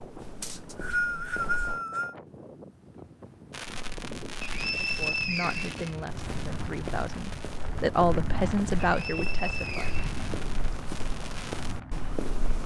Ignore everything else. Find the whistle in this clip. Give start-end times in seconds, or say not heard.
0.4-2.1, 4.4-5.9, 8.8-10.8.